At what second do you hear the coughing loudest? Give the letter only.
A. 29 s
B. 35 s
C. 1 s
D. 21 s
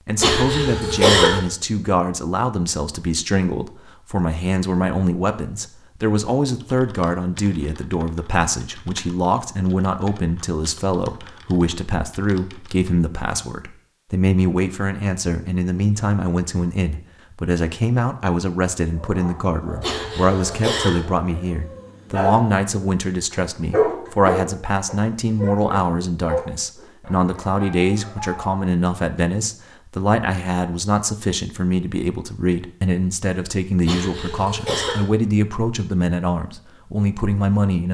C.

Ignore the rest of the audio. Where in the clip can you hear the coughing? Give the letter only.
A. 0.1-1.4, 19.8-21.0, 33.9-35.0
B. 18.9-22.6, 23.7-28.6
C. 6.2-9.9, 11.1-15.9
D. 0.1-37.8
A.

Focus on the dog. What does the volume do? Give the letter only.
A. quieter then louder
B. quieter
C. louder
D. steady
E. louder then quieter
E.